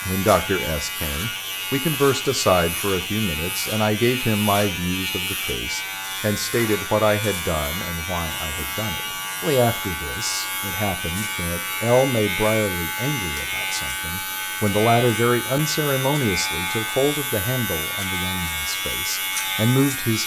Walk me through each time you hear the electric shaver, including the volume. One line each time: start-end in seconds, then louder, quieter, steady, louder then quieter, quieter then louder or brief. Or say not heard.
0.0-20.2 steady.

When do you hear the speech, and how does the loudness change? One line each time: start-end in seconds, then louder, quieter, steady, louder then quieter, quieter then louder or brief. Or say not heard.
0.1-20.2 steady.